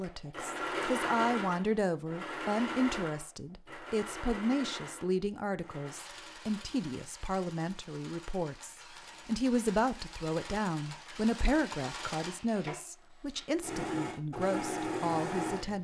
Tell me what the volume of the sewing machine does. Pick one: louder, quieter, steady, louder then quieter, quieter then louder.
quieter then louder.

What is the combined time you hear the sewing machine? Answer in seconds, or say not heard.
16 s.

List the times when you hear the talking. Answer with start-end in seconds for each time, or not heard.
0.0-15.8.